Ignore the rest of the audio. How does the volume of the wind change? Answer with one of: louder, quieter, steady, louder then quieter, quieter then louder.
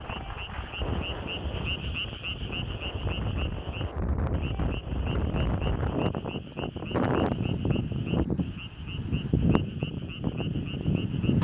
louder.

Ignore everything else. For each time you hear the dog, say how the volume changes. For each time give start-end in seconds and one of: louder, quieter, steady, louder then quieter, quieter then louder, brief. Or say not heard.
not heard.